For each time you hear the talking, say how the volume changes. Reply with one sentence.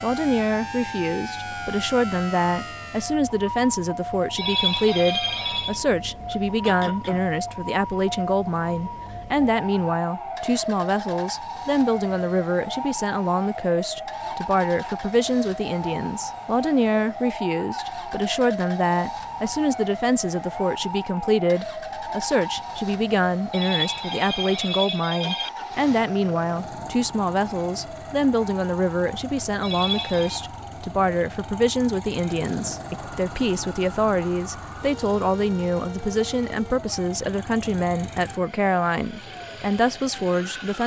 You can hear the talking from 0.0 to 40.8 s, at a steady volume.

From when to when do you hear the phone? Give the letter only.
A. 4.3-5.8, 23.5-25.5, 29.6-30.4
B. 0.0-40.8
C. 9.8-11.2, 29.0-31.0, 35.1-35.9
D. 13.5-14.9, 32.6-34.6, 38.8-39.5
A.